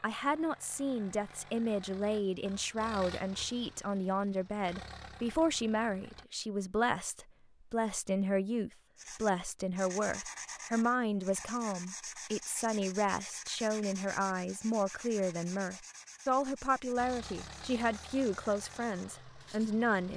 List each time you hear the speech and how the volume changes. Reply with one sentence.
You can hear the speech from 0.0 to 20.1 s, at a steady volume.